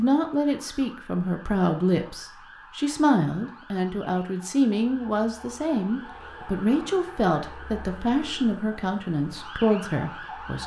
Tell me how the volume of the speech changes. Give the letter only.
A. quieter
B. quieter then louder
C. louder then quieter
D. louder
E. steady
E.